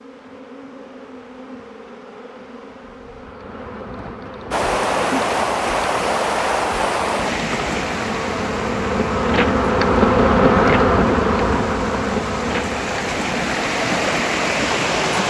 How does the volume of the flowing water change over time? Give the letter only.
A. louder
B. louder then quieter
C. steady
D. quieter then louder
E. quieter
D.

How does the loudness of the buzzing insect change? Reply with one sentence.
The volume of the buzzing insect goes up, then down.